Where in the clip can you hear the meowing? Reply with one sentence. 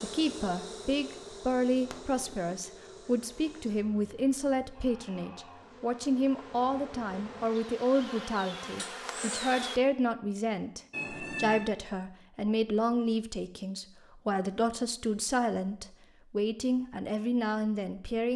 You can hear the meowing from 10.9 to 11.7 s.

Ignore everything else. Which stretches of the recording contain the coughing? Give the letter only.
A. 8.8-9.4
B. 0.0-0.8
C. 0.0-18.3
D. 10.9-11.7
A.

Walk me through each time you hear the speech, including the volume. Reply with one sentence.
You can hear the speech from 0.0 to 18.3 s, at a steady volume.